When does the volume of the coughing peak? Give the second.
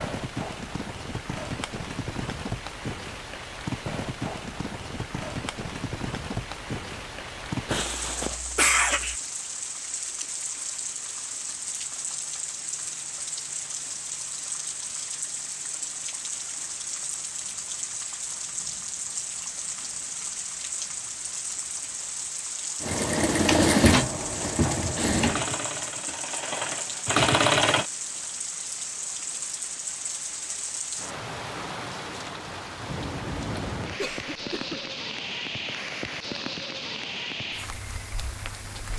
9 s.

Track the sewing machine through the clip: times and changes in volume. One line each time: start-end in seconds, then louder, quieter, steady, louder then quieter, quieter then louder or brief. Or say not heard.
22.8-27.9 quieter then louder.